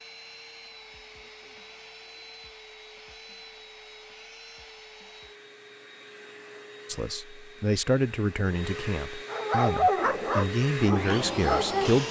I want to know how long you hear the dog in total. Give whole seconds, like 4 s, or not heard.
3 s.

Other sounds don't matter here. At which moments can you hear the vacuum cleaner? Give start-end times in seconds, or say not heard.
0.0-12.0.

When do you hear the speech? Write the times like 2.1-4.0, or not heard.
6.8-12.0.